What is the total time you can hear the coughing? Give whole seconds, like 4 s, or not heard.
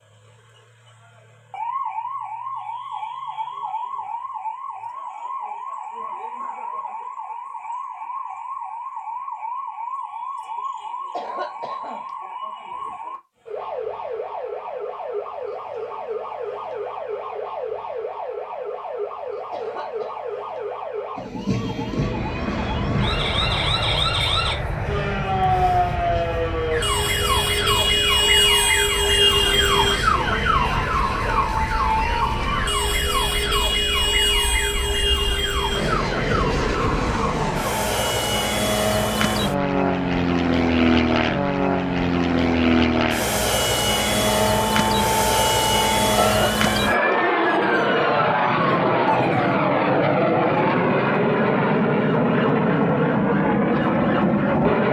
2 s.